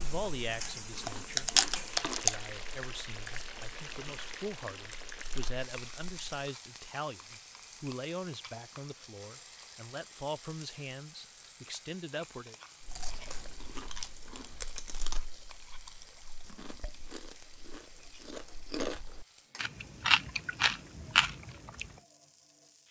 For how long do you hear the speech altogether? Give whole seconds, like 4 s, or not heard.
12 s.